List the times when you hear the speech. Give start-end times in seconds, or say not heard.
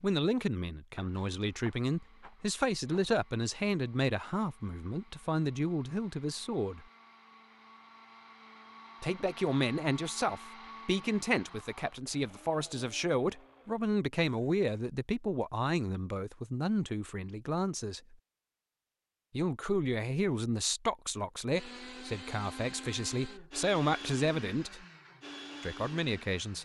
0.0-6.8, 9.0-18.1, 19.3-24.9, 25.6-26.6.